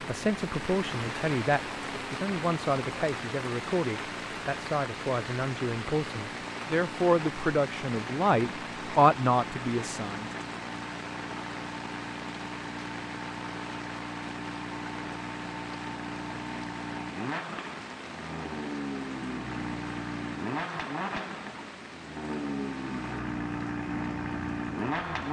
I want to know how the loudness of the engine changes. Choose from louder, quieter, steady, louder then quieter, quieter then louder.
louder.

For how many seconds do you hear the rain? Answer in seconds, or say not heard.
25 s.